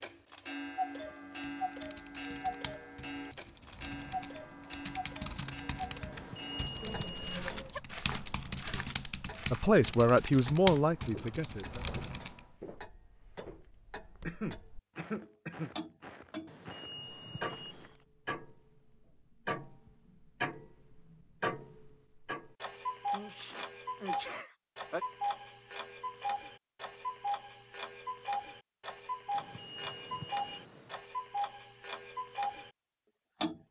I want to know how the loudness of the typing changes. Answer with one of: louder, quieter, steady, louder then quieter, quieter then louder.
louder.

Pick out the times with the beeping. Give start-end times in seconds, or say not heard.
6.1-7.8, 16.4-17.9, 29.3-31.0.